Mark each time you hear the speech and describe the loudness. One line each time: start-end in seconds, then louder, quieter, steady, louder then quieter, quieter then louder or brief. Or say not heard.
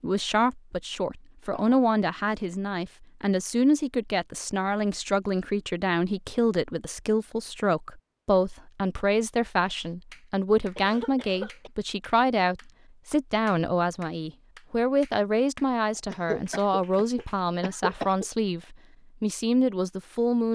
0.0-20.4 steady.